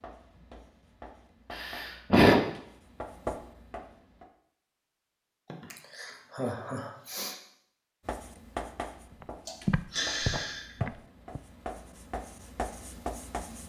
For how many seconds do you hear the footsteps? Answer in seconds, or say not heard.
2 s.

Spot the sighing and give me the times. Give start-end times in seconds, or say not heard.
1.5-2.4, 5.5-7.4, 9.4-10.8.